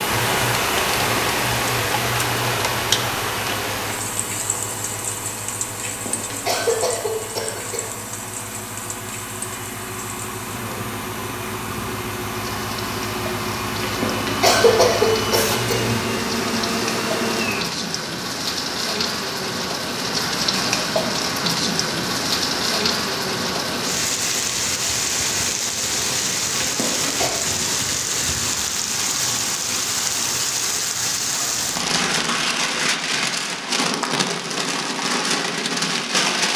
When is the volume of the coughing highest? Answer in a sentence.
The loudest moment of the coughing is at 15 seconds.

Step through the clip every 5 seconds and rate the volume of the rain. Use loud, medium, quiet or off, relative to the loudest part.
loud, quiet, quiet, medium, loud, loud, loud, loud.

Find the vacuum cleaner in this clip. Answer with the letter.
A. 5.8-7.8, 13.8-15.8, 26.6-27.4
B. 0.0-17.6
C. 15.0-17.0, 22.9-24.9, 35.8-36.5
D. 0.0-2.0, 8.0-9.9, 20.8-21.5
B.